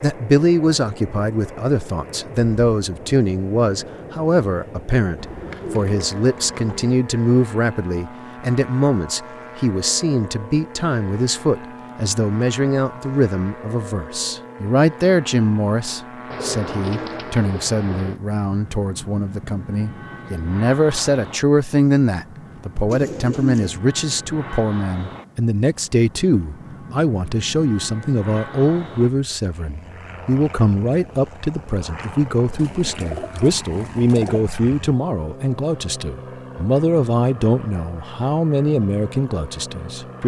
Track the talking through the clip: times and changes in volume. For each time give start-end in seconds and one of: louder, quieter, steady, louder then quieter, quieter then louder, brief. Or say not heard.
0.0-40.2 steady.